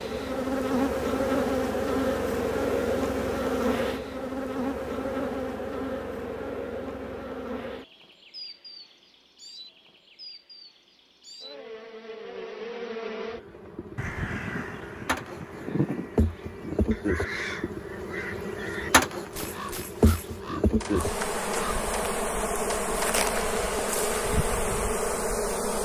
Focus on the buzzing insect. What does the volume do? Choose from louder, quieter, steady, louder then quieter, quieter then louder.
quieter then louder.